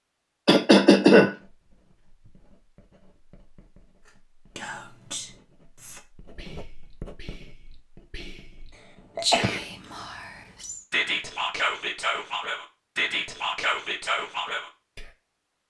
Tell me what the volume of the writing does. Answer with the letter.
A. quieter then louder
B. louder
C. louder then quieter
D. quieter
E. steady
C.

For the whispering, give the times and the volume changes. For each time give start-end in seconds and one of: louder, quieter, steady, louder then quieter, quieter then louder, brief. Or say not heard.
4.0-15.1 quieter then louder.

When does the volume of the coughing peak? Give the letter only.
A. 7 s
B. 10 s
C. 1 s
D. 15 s
C.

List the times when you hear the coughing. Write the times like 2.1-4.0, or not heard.
0.5-1.3, 9.2-10.1.